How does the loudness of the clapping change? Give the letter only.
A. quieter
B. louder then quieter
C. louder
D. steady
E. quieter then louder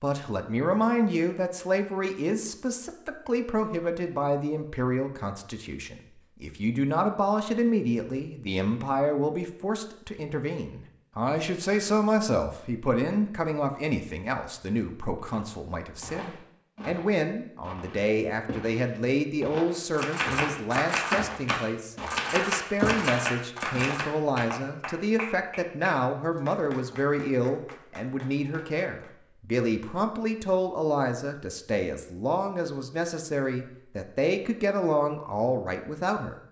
A.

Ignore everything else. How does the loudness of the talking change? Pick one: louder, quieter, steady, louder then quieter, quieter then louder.
steady.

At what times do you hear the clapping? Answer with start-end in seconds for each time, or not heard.
19.9-29.1.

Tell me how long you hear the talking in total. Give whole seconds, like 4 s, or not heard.
36 s.